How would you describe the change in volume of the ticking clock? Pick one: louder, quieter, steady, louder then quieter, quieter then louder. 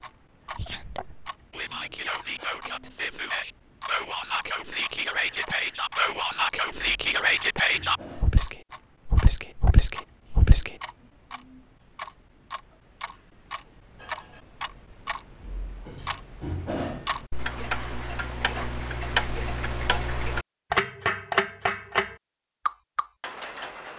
louder.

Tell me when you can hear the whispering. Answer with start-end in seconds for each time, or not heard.
0.5-10.7.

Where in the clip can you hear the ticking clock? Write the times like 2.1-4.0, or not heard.
0.0-23.9.